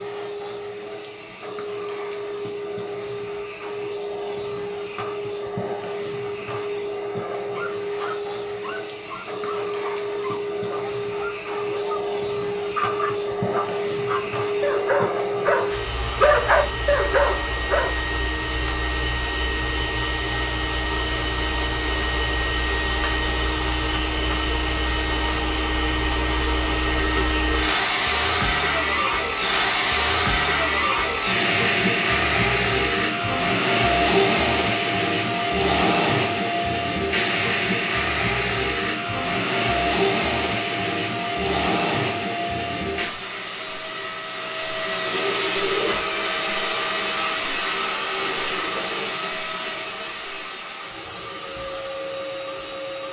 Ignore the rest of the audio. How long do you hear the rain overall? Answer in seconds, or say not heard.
not heard.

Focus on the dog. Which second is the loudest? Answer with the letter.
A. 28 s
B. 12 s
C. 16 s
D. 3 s
C.